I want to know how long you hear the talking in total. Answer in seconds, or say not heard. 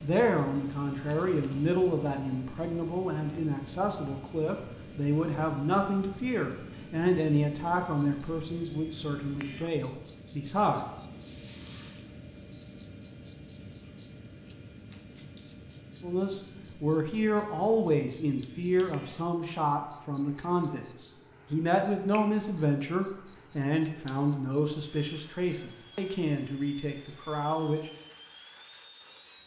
23 s.